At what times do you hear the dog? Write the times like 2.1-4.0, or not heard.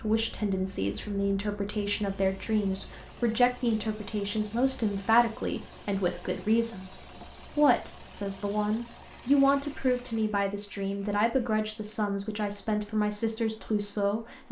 not heard.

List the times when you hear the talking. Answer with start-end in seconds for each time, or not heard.
0.0-14.4.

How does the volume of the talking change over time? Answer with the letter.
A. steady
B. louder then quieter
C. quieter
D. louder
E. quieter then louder
A.